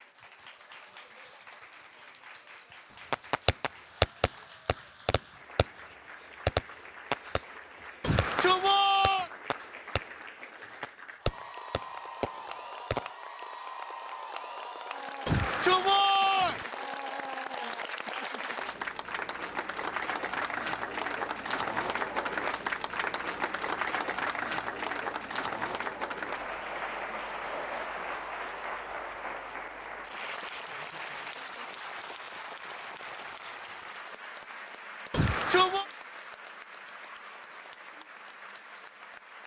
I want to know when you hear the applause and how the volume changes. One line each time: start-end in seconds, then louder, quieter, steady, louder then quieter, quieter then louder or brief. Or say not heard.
0.0-39.4 louder then quieter.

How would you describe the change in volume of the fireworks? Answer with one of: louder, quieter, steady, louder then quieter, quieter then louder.
quieter then louder.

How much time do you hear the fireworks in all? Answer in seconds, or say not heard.
10 s.